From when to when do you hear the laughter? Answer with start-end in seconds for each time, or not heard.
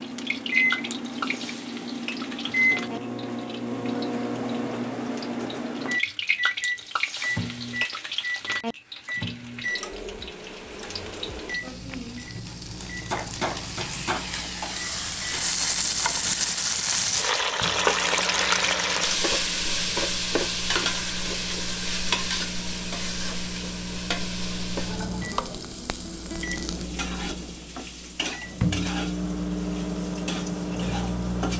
not heard.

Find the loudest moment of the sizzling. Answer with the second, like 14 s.
18 s.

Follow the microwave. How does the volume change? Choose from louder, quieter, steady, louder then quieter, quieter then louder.
quieter then louder.